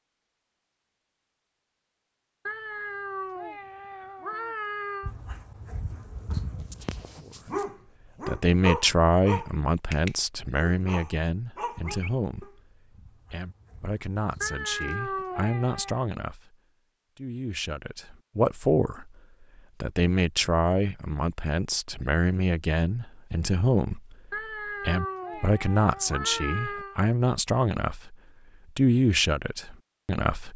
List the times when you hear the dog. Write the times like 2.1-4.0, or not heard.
5.0-15.0.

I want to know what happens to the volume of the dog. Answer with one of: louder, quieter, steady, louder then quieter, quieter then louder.
louder then quieter.